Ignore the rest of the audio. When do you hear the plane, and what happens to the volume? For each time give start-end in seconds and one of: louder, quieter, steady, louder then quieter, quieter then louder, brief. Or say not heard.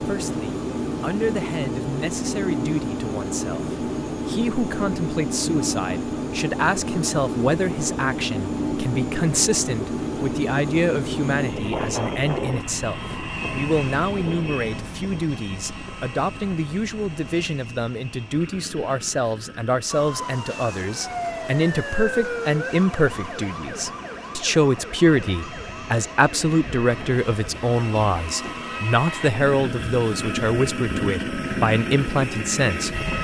0.0-33.1 quieter then louder.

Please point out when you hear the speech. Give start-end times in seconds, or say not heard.
0.0-33.1.